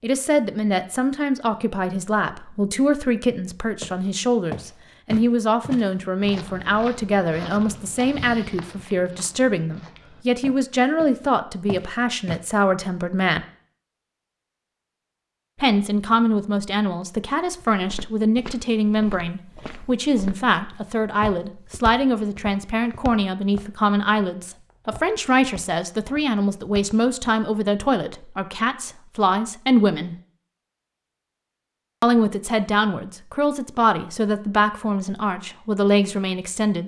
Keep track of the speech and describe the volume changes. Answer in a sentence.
The volume of the speech stays about the same.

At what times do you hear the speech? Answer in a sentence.
The speech can be heard from 0.0 to 13.4 s, from 15.6 to 30.1 s and from 32.0 to 36.8 s.